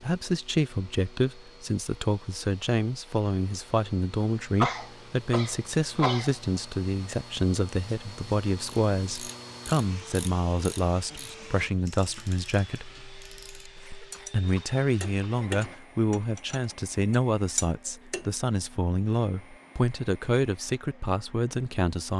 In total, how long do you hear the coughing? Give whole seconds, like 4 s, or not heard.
4 s.